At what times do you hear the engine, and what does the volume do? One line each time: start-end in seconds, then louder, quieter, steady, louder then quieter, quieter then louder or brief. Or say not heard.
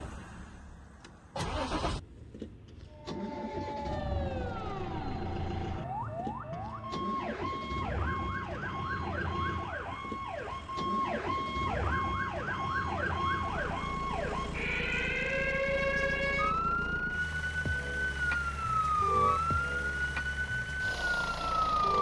0.0-21.9 steady.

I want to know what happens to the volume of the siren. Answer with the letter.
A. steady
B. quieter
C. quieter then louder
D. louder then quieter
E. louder
E.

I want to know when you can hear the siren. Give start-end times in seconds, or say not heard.
2.9-21.9.